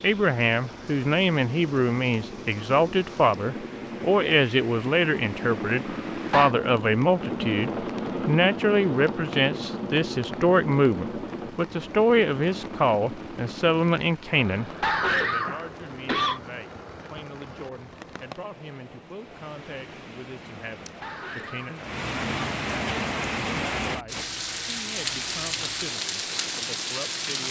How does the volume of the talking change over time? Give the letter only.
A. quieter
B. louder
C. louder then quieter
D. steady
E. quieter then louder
A.